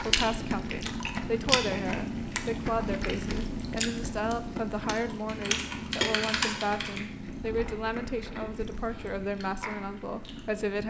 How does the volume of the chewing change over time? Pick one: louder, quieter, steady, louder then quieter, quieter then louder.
quieter.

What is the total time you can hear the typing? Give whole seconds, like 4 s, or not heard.
2 s.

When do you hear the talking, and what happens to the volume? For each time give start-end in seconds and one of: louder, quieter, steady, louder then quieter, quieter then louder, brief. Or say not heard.
0.0-10.8 steady.